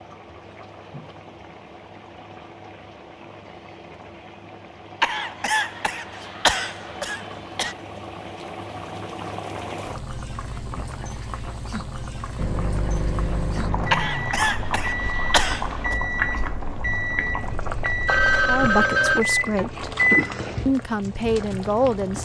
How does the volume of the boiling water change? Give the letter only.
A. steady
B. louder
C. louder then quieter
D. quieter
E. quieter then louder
B.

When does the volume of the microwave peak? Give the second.
20 s.